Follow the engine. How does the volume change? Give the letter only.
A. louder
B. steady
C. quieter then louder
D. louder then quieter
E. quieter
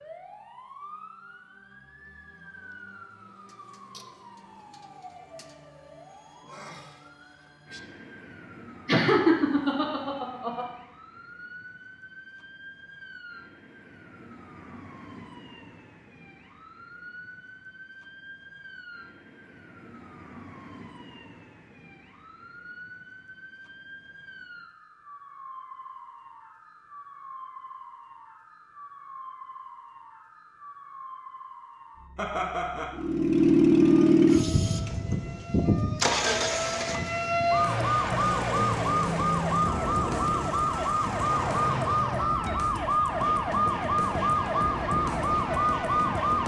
E.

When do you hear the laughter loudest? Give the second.
9 s.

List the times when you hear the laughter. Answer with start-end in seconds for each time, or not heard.
8.8-10.7, 32.1-33.0.